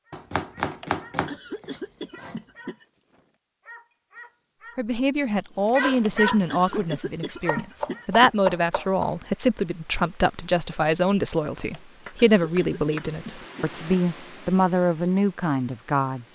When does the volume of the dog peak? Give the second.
6 s.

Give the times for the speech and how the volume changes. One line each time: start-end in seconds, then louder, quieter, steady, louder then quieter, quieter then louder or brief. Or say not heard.
4.8-16.2 steady.